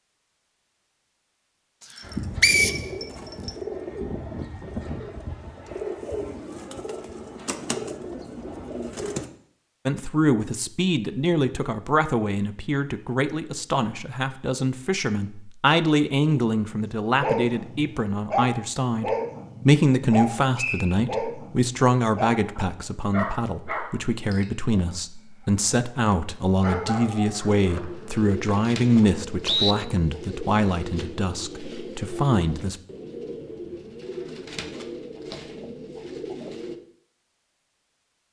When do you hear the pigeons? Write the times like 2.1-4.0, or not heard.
2.0-9.3, 27.6-36.8.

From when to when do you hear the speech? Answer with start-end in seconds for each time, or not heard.
9.8-32.8.